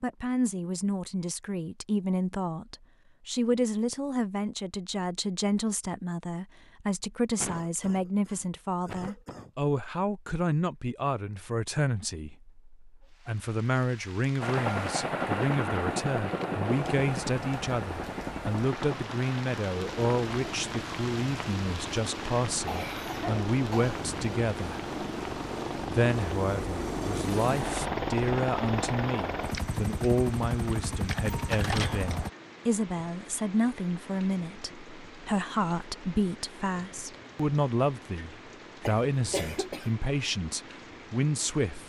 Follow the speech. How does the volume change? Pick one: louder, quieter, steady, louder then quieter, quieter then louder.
steady.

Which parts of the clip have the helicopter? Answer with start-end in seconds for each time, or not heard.
14.4-32.3.